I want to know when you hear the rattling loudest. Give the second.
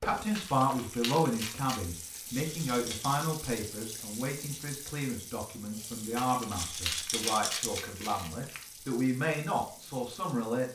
7 s.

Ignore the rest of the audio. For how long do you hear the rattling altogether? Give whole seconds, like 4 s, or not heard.
2 s.